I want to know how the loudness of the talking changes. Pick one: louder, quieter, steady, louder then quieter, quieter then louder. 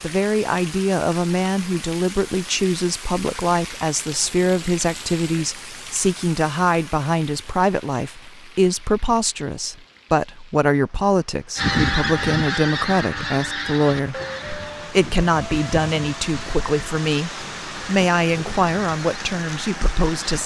steady.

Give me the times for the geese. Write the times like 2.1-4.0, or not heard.
11.6-20.4.